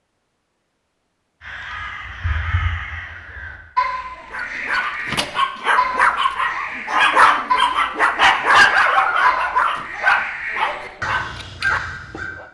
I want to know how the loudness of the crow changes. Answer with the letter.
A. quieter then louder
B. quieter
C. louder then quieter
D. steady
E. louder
D.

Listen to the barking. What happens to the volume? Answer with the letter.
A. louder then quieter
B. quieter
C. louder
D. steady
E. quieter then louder
A.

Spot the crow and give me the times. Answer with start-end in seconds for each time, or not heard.
1.4-12.3.